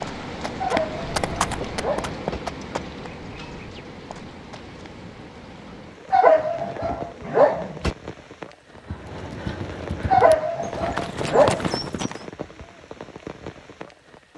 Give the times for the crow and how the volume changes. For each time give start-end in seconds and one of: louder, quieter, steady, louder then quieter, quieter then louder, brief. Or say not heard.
not heard.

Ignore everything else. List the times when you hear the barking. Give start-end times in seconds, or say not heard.
0.6-2.4, 6.1-8.0, 10.1-11.7.